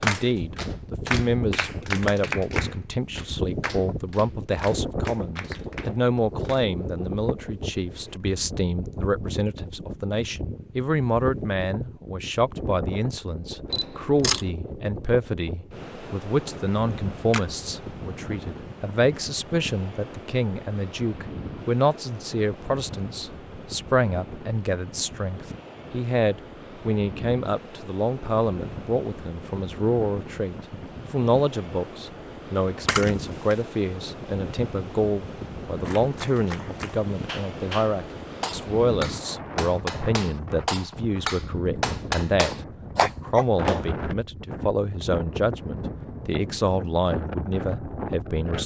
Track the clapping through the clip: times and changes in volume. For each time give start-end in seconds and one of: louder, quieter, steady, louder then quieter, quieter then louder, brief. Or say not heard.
0.0-6.7 quieter
35.8-43.9 louder.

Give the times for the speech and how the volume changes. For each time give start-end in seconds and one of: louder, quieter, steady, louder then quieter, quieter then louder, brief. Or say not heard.
0.0-48.6 steady.